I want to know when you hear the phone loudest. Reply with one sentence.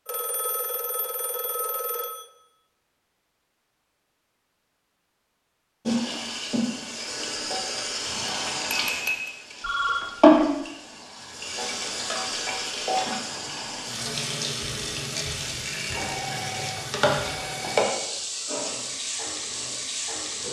The volume of the phone peaks at 10 seconds.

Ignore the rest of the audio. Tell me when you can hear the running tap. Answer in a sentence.
You can hear the running tap from 5.8 to 20.4 s.